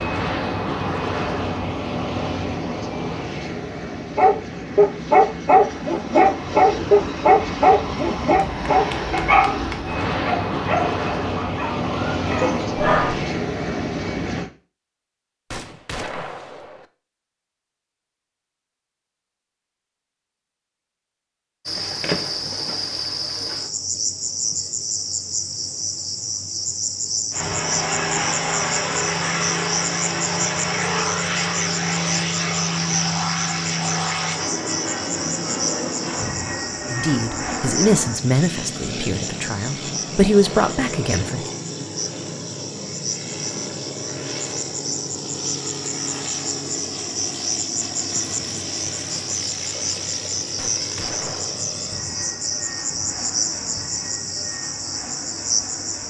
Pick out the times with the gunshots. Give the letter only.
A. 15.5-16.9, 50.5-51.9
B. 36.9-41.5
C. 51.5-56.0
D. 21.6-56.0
A.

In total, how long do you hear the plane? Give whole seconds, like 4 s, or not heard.
43 s.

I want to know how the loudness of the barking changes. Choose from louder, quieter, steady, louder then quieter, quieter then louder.
quieter.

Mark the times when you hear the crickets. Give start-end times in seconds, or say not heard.
21.6-56.0.